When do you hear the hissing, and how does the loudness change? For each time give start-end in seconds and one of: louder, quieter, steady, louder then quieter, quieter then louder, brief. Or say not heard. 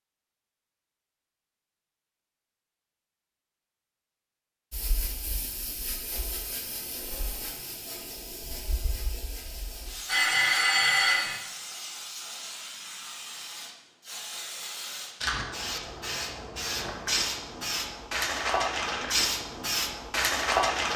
4.7-20.9 louder.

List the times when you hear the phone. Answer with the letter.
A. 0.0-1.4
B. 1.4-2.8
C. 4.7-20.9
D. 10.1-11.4
D.